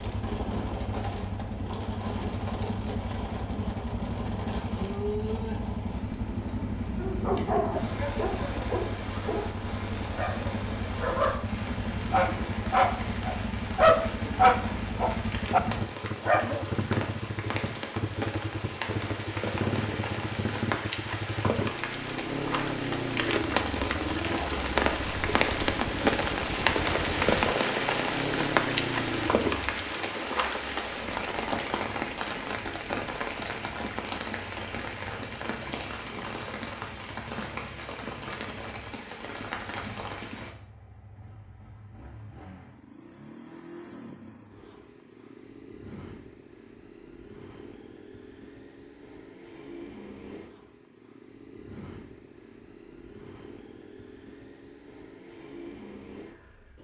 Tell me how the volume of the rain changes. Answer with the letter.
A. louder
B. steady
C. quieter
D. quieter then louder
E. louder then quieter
E.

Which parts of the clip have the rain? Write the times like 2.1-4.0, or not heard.
0.0-40.5.